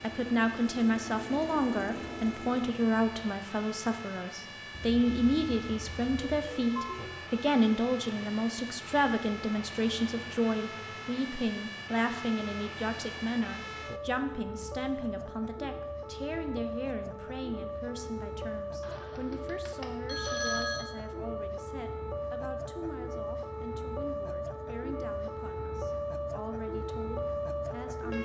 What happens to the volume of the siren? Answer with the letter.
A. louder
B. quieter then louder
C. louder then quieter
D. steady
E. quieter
A.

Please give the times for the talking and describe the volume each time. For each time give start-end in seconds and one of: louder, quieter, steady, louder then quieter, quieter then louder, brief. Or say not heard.
0.0-28.1 quieter.